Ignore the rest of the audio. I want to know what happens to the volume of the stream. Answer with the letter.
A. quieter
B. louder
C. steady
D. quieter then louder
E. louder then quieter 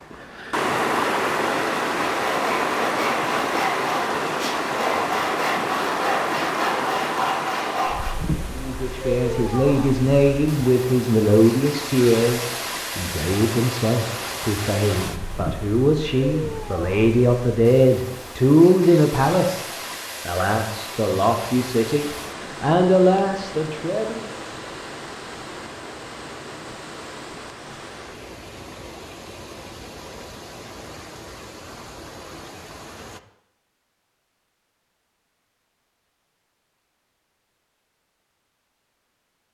A.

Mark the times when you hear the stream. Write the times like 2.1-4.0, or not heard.
0.0-33.2.